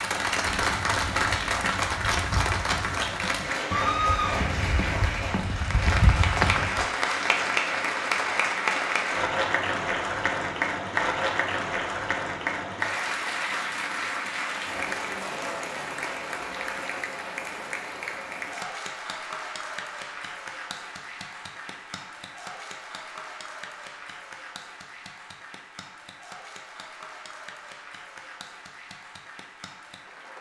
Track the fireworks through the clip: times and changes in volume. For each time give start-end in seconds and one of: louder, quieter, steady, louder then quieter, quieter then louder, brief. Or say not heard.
not heard.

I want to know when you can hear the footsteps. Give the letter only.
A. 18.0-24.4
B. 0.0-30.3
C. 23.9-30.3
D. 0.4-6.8
D.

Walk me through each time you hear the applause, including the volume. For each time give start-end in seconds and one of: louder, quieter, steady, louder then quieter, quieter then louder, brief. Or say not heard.
0.0-30.3 quieter.